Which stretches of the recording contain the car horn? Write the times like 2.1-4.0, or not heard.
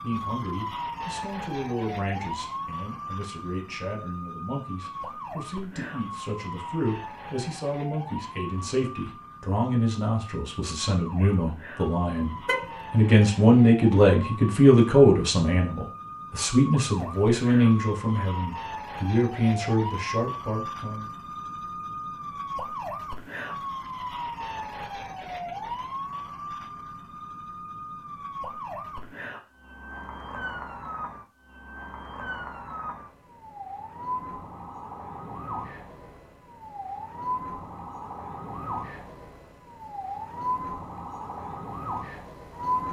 12.1-13.1.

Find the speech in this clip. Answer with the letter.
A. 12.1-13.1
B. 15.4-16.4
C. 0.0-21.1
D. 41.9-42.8
C.